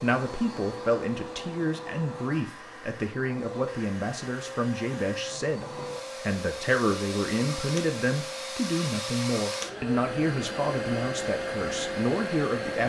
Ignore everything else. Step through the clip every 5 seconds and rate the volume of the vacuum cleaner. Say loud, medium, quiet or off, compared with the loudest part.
medium, loud, loud.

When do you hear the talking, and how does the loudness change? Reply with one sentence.
You can hear the talking from 0.0 to 12.8 s, at a steady volume.